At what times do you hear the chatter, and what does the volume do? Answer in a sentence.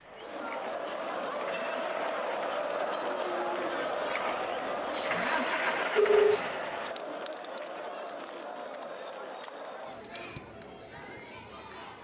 You can hear the chatter from 0.0 to 12.0 s, getting quieter.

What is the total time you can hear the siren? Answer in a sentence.
You can't hear the siren here.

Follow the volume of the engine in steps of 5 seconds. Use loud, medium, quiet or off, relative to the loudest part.
medium, loud, off.